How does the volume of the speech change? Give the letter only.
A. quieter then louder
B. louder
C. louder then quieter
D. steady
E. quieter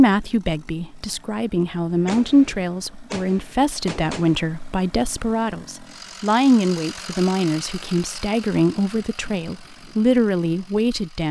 D.